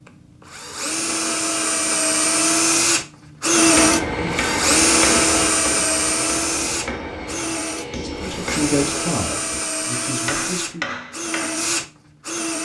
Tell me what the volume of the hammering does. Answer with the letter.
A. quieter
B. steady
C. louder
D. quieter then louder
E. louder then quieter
A.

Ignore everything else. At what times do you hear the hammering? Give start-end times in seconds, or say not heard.
3.5-11.7.